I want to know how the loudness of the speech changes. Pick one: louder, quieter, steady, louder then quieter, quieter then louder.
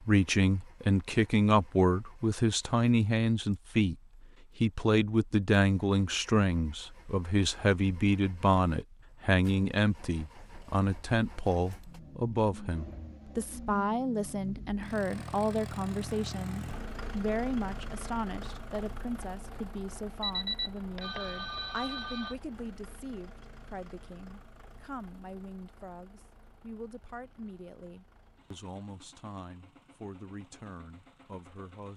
quieter.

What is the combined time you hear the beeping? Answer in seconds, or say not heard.
2 s.